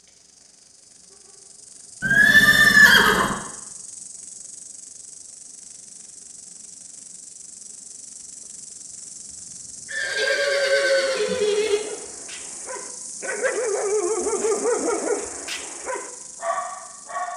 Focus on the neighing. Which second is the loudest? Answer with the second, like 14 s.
3 s.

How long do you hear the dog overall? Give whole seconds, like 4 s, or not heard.
7 s.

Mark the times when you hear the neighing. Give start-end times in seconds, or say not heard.
2.0-3.4, 9.8-11.8.